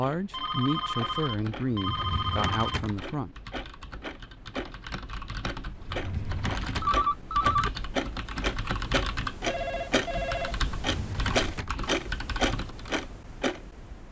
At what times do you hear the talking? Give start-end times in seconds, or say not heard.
0.0-3.4.